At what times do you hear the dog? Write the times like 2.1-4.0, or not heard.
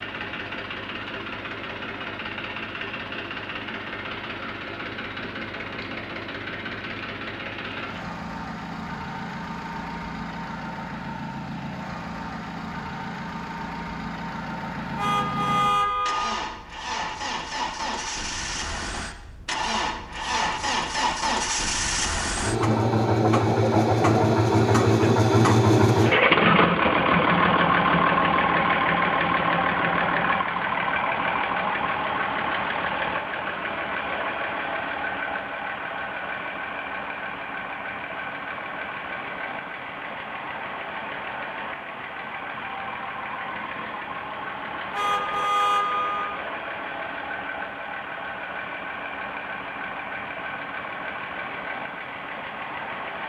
not heard.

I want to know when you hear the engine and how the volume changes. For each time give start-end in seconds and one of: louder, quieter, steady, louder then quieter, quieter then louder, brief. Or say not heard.
0.0-53.2 louder then quieter.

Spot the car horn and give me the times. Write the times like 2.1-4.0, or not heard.
14.9-16.4, 44.9-46.4.